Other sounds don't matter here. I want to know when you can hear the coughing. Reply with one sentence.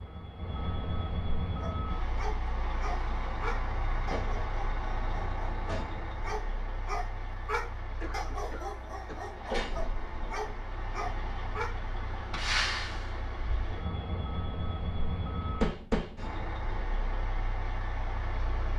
The coughing can be heard from 8.0 to 9.3 s.